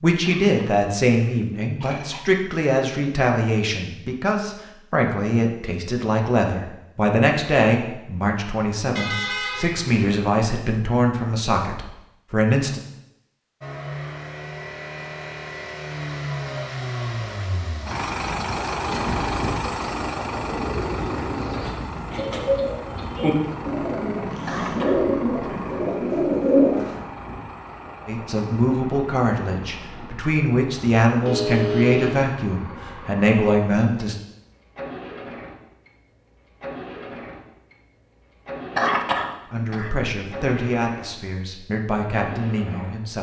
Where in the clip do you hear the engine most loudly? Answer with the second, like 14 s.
19 s.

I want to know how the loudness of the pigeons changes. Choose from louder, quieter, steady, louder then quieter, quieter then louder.
louder.